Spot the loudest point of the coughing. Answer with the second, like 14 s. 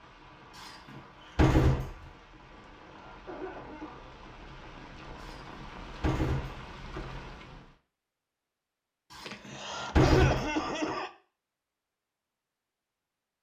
10 s.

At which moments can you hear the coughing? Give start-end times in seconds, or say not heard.
2.5-4.0, 9.2-11.1.